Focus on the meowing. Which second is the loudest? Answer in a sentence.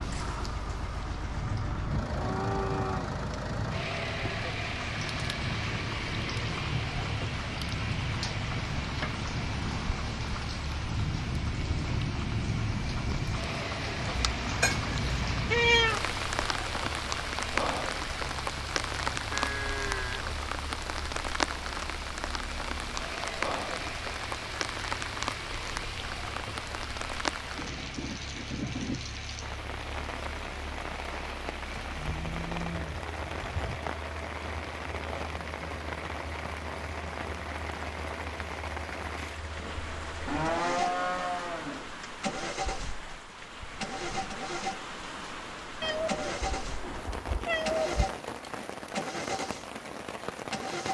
The volume of the meowing peaks at 16 seconds.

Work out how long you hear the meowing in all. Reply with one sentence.
The meowing can be heard for 4 seconds in total.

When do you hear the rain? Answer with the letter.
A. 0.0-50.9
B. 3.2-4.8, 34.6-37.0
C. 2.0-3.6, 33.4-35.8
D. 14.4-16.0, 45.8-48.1
A.